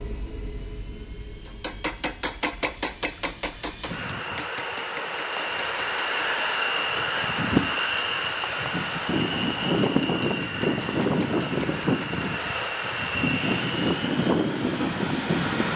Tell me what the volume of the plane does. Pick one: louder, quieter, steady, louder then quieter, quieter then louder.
louder.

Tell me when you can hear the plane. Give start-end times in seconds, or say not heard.
0.0-15.7.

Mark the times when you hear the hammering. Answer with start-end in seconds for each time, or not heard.
1.4-12.4.